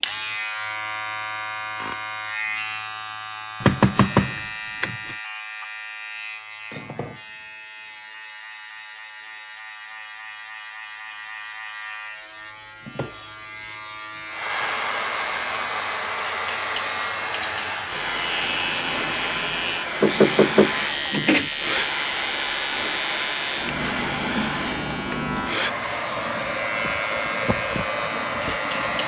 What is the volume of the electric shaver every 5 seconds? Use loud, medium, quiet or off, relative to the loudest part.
loud, medium, medium, loud, loud, loud.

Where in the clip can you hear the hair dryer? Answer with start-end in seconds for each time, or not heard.
14.3-29.0.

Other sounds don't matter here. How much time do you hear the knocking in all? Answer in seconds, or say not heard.
3 s.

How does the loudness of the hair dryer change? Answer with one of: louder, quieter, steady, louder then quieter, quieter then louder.
steady.